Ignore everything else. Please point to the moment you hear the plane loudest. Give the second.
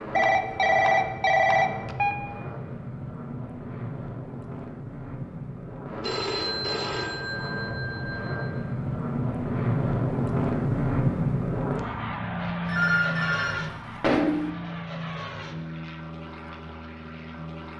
11 s.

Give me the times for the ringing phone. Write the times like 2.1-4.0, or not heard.
0.1-2.1, 6.0-8.6, 12.7-14.5.